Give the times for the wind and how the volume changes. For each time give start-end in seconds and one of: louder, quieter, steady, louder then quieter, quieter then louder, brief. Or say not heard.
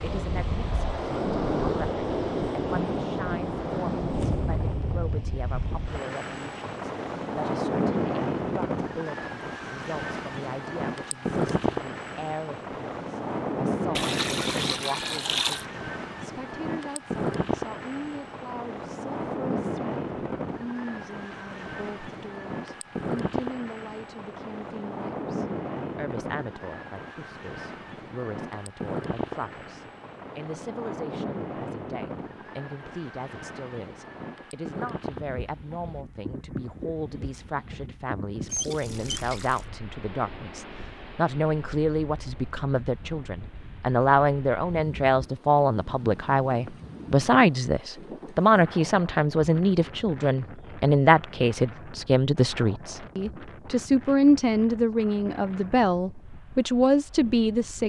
0.0-57.8 quieter.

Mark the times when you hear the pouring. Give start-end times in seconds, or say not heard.
13.9-15.7, 38.5-39.6.